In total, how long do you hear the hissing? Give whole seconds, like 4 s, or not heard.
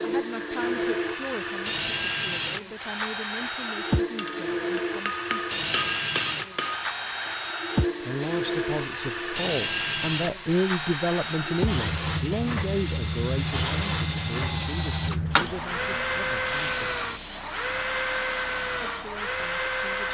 20 s.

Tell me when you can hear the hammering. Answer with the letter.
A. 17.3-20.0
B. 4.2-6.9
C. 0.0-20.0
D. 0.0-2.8
B.